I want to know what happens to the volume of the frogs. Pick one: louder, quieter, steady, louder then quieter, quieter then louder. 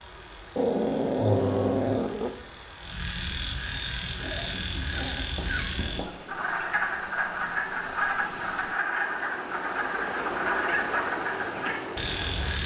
louder.